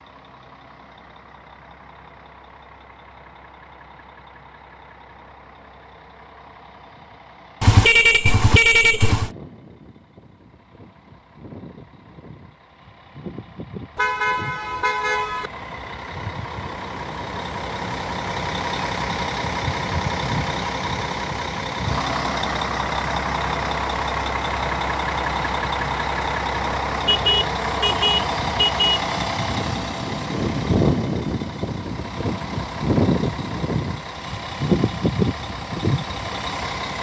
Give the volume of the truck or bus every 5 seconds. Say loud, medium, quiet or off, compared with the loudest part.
quiet, quiet, quiet, medium, loud, loud, loud, loud.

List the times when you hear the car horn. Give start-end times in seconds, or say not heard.
7.6-9.3, 13.9-15.5, 27.1-29.1.